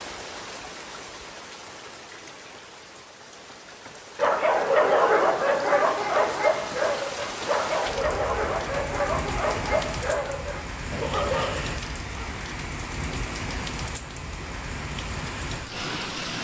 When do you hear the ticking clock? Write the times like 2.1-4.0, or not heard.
not heard.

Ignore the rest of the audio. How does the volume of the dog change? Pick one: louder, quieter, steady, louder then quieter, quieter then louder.
quieter.